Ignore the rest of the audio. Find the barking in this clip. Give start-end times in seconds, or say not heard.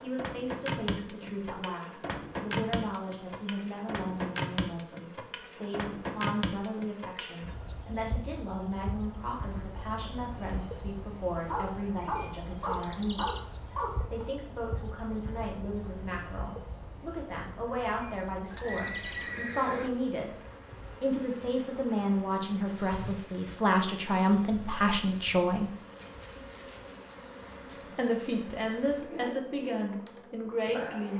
11.3-14.2.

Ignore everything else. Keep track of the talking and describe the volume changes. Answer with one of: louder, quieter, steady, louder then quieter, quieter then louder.
louder.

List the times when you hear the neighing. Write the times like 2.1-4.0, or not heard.
18.5-19.9.